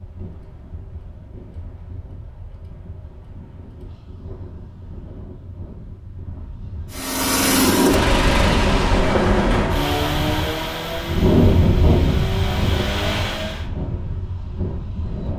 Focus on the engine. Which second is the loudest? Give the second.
8 s.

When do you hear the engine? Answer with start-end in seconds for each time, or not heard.
6.9-13.7.